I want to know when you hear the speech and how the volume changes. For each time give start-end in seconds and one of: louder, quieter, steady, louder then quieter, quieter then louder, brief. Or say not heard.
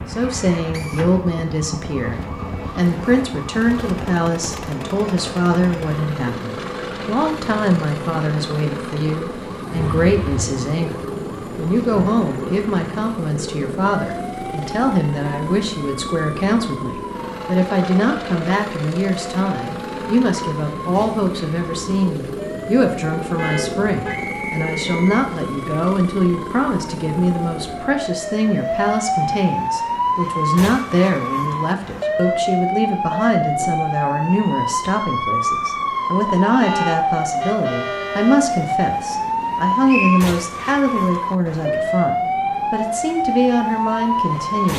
0.1-44.7 steady.